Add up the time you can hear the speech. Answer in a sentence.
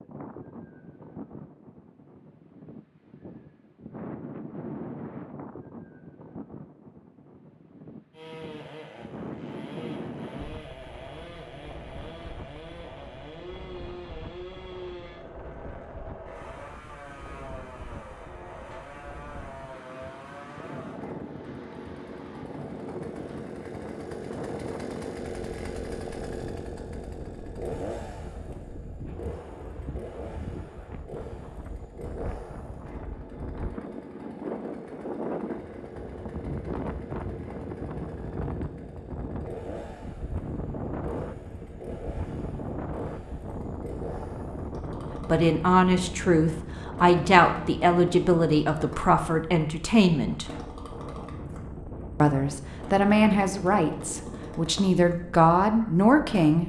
The speech can be heard for 10 seconds in total.